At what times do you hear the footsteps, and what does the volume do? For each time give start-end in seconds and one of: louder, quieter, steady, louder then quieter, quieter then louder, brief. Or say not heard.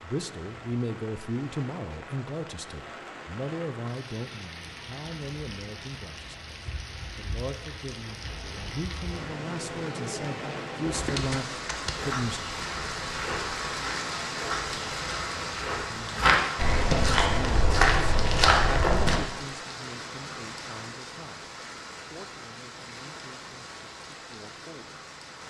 10.8-19.2 louder.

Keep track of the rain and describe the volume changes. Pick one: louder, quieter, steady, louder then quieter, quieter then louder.
louder then quieter.